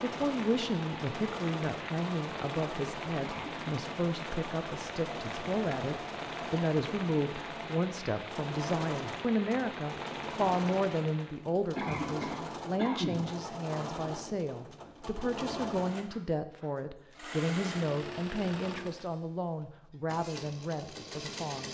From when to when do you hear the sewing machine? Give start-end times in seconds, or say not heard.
0.0-21.6.